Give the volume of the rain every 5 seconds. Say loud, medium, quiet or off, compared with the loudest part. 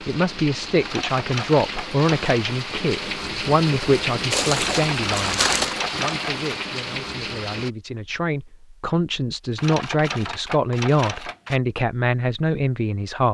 loud, loud, off.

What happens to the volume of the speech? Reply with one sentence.
The loudness of the speech goes down, then up.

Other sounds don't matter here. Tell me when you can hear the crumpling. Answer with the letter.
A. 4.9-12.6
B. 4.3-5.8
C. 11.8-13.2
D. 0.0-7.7
B.